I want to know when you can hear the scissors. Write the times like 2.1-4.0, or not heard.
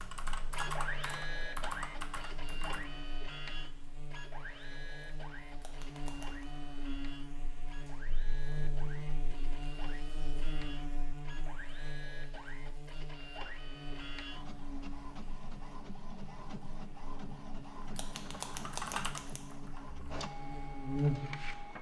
5.6-6.5, 17.9-19.4.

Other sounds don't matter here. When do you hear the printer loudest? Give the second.
1 s.